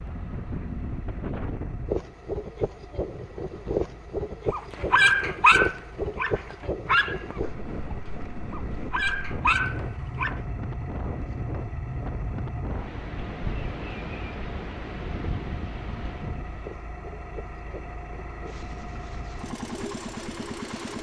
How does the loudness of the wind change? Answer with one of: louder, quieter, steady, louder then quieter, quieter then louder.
quieter.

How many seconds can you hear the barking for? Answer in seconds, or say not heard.
6 s.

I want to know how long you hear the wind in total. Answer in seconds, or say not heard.
21 s.